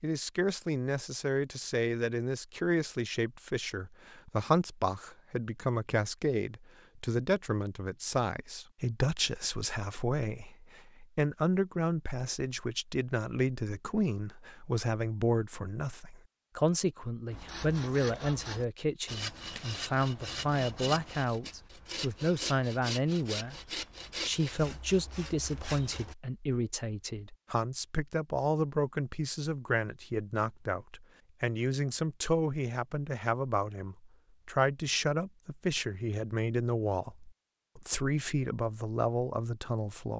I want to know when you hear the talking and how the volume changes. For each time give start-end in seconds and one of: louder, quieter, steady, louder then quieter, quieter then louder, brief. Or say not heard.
0.0-23.6 steady
24.2-40.1 steady.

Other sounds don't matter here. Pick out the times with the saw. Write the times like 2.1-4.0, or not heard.
17.3-26.1.